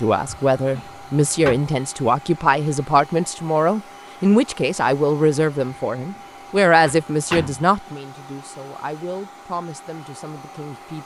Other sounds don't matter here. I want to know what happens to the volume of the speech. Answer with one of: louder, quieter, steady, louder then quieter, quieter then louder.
quieter.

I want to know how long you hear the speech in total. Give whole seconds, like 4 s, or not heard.
11 s.